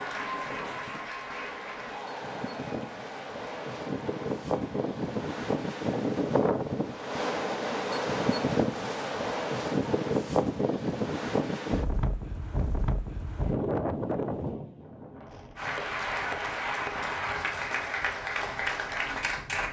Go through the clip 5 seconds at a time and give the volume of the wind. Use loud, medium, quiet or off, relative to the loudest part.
medium, loud, loud, quiet.